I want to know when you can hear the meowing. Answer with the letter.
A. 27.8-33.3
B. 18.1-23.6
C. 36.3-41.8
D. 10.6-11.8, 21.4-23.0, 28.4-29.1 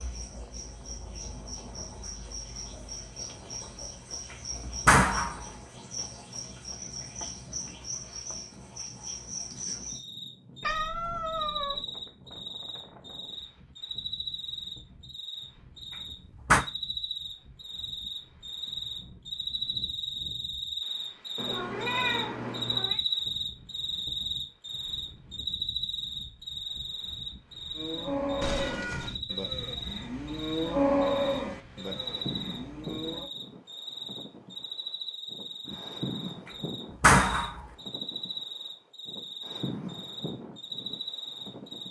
D.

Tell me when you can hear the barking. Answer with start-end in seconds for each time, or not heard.
not heard.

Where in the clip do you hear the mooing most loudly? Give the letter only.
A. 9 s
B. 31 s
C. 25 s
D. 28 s
B.